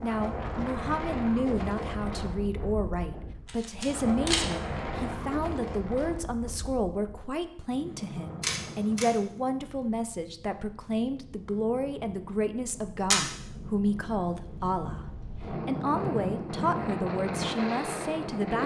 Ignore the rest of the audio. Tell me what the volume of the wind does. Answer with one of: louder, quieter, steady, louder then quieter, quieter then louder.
quieter then louder.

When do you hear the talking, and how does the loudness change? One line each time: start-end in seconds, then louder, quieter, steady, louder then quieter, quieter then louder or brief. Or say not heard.
0.0-18.6 steady.